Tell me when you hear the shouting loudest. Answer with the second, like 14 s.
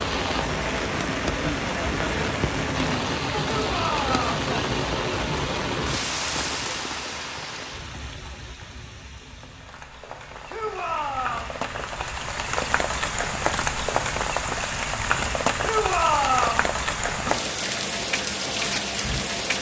16 s.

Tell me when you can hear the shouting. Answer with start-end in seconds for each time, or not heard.
3.5-4.3, 10.4-11.6, 15.6-16.7.